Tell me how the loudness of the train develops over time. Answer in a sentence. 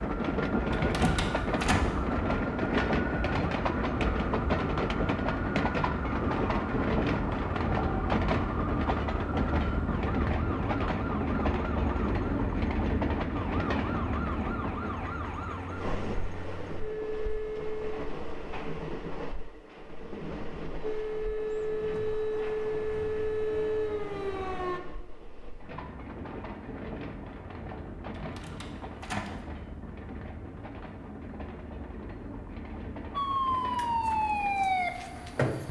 The volume of the train goes down.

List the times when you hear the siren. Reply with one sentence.
You can hear the siren from 0.0 to 17.9 s, from 20.8 to 24.8 s and from 33.1 to 35.6 s.